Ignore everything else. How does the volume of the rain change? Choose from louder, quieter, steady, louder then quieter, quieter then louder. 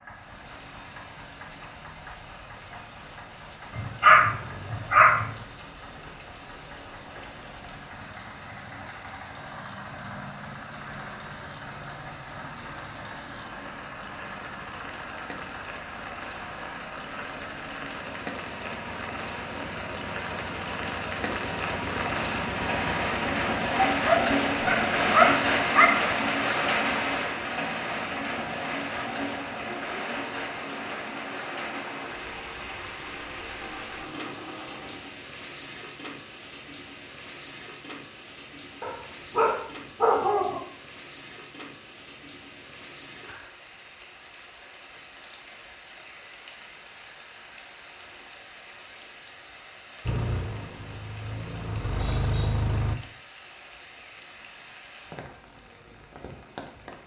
louder then quieter.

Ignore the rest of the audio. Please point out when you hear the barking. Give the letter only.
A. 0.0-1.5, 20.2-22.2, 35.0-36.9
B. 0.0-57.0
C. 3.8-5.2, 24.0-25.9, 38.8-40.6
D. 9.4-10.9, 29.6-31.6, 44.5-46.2
C.